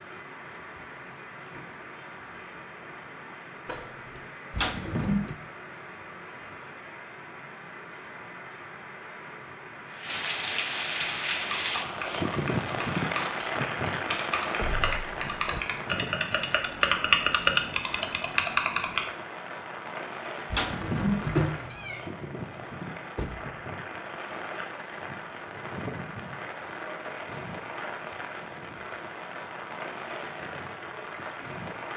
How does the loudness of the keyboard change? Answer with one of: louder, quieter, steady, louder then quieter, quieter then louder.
louder.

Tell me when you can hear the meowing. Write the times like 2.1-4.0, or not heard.
4.5-5.3, 20.5-22.0.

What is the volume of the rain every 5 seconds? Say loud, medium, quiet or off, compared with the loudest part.
quiet, quiet, loud, medium, medium, medium, medium.